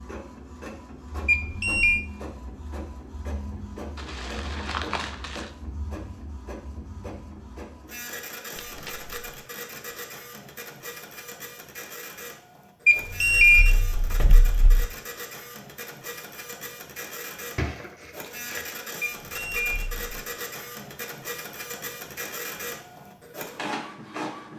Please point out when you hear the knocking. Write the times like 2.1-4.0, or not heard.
not heard.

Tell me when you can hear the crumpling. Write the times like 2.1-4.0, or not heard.
4.0-5.5, 8.6-9.3, 17.6-18.8.